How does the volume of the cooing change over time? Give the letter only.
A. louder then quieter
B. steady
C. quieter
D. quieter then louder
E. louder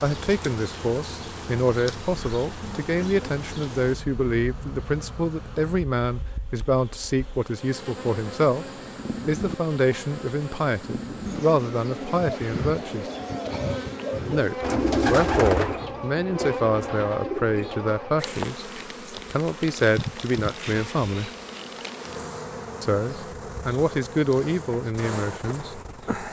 A.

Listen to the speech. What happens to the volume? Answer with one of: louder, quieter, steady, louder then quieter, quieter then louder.
steady.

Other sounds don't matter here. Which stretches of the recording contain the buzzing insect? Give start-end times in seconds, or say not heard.
0.0-26.2.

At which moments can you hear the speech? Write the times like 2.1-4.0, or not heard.
0.0-8.7, 9.2-13.1, 14.3-21.3, 22.8-26.2.